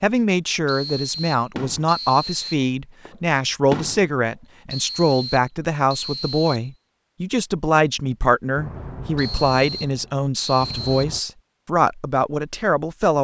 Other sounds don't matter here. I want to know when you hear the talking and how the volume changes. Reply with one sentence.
The talking can be heard from 0.0 to 13.1 s, at a steady volume.